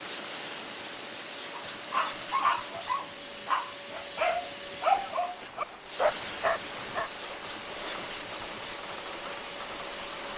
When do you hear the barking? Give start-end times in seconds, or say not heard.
1.5-7.3.